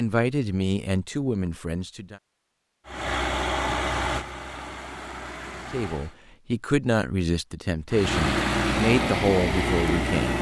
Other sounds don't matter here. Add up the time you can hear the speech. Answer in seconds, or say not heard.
7 s.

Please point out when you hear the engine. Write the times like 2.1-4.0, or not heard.
2.9-6.2, 7.9-10.3.